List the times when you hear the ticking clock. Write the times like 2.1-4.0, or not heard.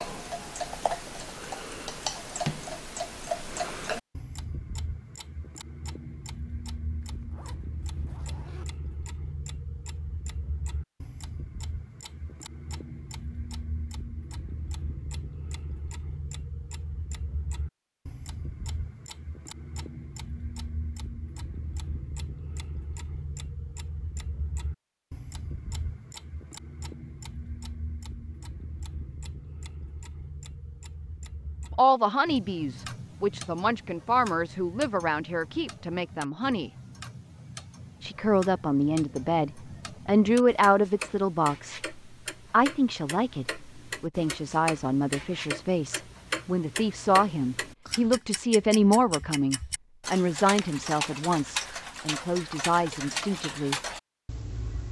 0.0-54.8.